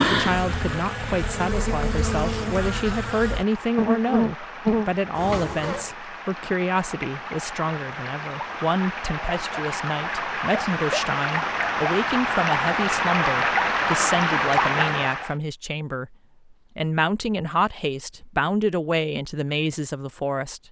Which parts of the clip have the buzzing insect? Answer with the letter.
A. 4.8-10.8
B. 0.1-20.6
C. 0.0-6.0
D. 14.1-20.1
C.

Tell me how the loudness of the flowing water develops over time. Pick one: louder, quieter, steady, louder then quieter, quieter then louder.
louder.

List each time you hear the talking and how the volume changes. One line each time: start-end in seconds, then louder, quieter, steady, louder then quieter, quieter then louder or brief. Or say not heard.
0.1-20.6 steady.